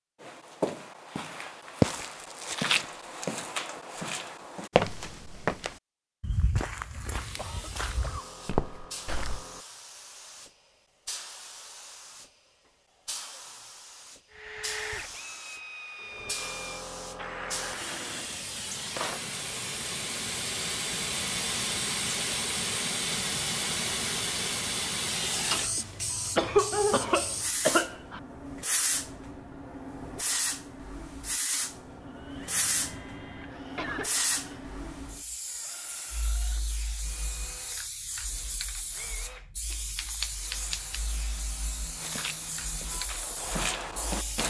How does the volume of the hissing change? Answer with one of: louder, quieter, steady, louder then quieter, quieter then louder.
louder then quieter.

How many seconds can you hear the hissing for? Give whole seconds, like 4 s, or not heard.
37 s.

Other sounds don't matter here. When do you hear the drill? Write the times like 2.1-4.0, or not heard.
14.3-18.2, 32.0-44.4.